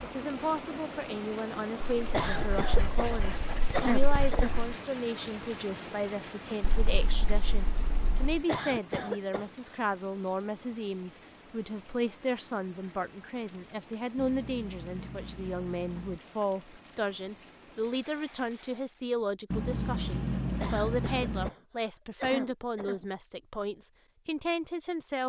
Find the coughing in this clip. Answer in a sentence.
You can hear the coughing from 2.1 to 4.6 s, from 8.4 to 9.5 s and from 20.6 to 23.1 s.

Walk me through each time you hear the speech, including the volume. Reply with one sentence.
You can hear the speech from 0.0 to 25.2 s, at a steady volume.